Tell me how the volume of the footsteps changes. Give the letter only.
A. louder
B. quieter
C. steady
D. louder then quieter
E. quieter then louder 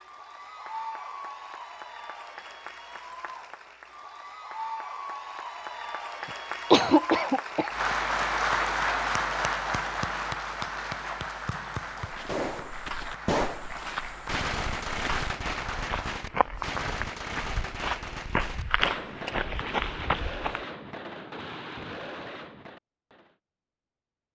A.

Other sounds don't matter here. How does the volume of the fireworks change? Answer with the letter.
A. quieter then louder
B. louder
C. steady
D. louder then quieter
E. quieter
E.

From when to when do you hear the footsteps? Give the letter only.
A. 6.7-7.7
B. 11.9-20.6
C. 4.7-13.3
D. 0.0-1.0
B.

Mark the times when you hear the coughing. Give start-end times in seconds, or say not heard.
6.7-7.7.